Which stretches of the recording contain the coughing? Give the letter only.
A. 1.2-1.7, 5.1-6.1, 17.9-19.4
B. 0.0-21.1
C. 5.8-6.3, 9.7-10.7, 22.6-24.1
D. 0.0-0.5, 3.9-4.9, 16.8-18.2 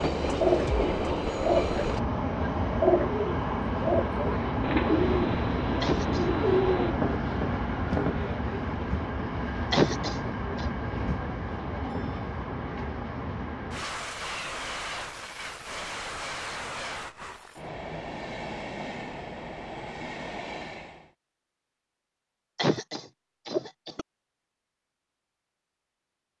C.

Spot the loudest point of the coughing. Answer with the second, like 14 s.
10 s.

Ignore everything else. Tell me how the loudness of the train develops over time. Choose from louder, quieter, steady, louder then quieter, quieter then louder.
quieter.